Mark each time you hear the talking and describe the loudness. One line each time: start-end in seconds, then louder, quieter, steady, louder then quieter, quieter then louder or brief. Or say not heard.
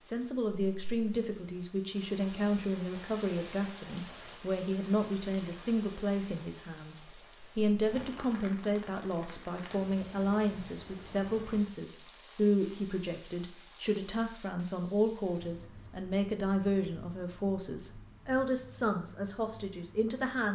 0.1-20.5 steady.